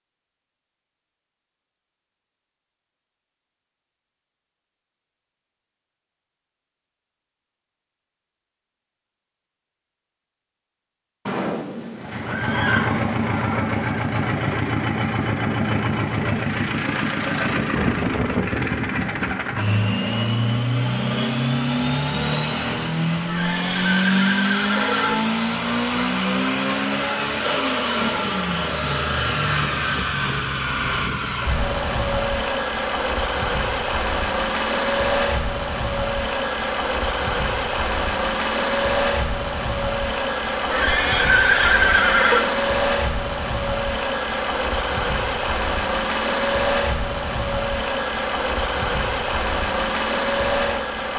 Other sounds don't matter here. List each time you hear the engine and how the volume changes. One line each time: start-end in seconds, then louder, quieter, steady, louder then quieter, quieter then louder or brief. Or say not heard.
12.0-51.1 steady.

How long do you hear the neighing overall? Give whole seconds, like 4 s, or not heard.
6 s.